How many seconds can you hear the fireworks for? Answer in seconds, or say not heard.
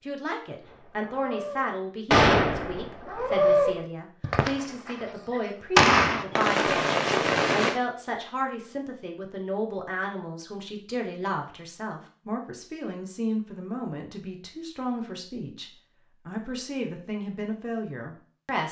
7 s.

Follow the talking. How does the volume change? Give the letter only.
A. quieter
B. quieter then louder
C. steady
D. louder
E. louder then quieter
C.